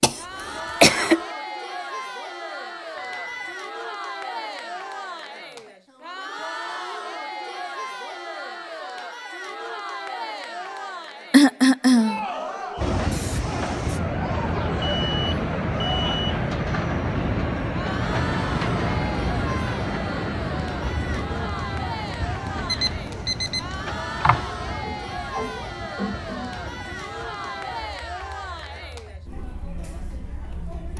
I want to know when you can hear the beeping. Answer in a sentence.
You can hear the beeping from 3.0 to 3.5 s, from 14.8 to 16.2 s and from 22.6 to 23.8 s.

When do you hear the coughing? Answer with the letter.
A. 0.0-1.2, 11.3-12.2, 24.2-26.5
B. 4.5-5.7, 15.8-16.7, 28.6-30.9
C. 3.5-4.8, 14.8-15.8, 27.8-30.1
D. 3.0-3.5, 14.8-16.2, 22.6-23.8
A.